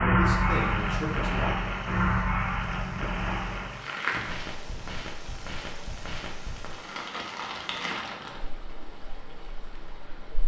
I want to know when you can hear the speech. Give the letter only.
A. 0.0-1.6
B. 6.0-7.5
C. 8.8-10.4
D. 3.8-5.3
A.